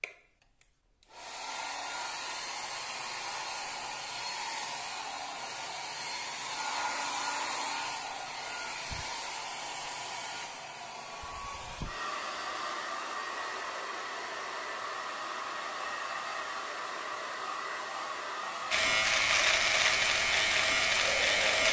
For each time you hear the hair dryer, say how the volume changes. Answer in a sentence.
You can hear the hair dryer from 0.0 to 21.6 s, at a steady volume.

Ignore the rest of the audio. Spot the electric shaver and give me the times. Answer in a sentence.
The electric shaver can be heard from 18.7 to 21.6 s.